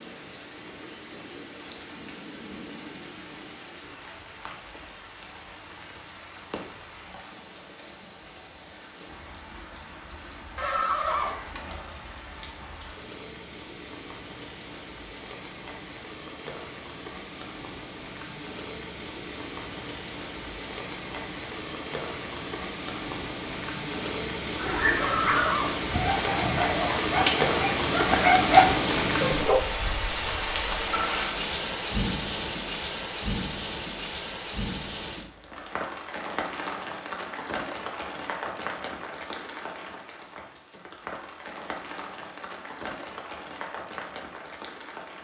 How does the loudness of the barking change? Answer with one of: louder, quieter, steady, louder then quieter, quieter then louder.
louder.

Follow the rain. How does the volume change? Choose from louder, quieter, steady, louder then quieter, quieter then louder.
louder then quieter.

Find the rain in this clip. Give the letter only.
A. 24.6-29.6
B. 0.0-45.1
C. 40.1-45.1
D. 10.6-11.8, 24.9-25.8
B.